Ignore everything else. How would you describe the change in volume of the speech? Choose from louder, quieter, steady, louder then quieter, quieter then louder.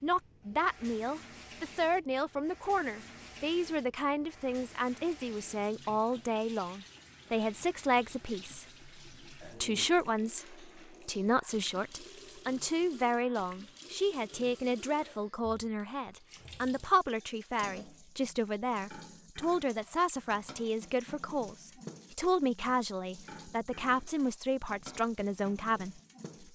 steady.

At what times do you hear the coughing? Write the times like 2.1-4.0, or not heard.
not heard.